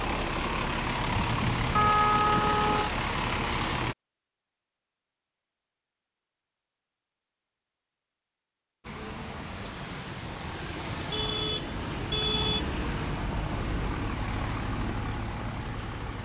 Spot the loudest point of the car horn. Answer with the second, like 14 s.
2 s.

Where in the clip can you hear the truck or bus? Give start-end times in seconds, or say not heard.
0.0-4.0, 8.8-16.1.